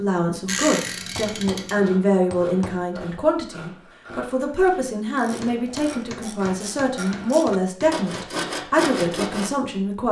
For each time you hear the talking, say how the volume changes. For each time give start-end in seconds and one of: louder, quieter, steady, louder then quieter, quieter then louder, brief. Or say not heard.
0.0-10.0 steady.